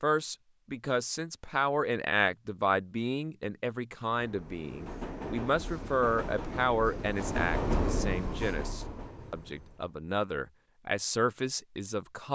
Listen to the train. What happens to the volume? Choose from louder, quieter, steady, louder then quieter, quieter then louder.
louder then quieter.